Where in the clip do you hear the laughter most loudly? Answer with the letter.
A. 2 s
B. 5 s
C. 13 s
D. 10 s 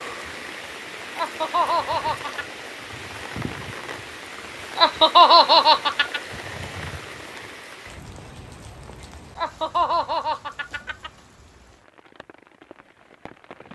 B.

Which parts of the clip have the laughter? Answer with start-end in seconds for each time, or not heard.
1.1-2.5, 4.8-6.2, 9.3-11.1.